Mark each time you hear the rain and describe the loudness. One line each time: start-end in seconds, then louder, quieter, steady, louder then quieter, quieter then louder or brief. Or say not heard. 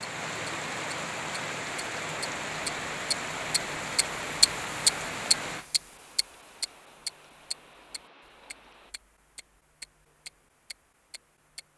0.0-8.9 quieter.